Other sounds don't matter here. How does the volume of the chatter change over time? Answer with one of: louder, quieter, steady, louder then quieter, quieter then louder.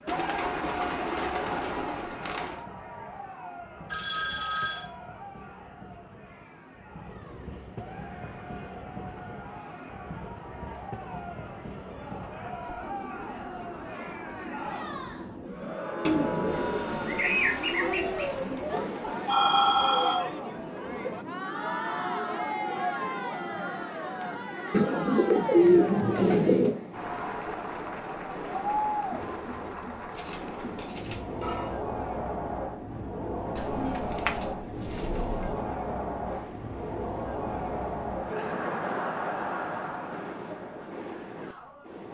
louder.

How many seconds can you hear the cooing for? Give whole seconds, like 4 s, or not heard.
9 s.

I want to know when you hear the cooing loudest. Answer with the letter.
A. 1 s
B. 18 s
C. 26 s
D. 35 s
C.